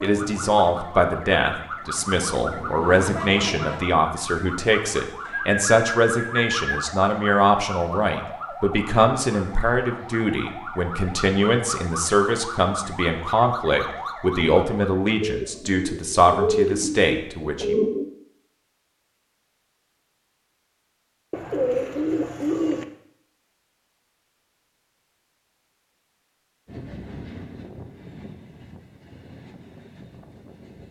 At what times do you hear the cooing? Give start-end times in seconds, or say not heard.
5.2-6.7, 15.2-18.1, 21.3-22.9.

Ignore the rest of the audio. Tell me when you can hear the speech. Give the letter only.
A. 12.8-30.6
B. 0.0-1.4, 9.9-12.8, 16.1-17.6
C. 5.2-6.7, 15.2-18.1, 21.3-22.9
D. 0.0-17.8
D.